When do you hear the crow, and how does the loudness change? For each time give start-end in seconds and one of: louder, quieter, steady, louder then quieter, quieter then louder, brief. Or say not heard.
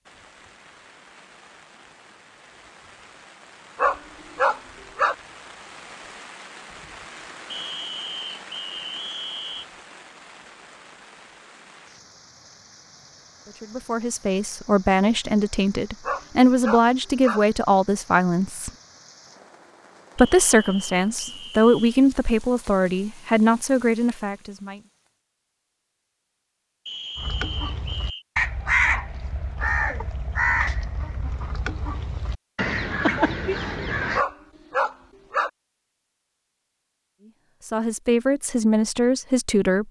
27.1-34.2 quieter then louder.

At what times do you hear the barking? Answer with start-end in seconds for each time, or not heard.
3.8-5.2, 16.0-17.4, 34.1-35.5.